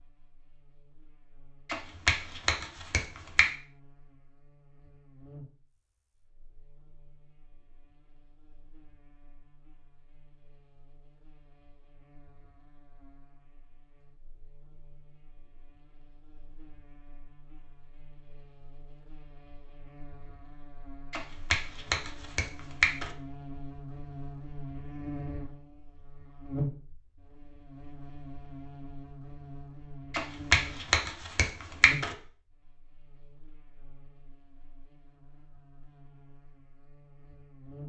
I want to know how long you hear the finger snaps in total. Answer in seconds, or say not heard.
6 s.